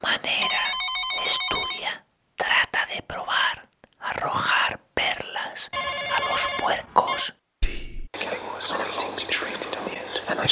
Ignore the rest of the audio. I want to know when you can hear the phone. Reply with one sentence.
The phone can be heard from 0.4 to 1.9 s and from 5.7 to 7.3 s.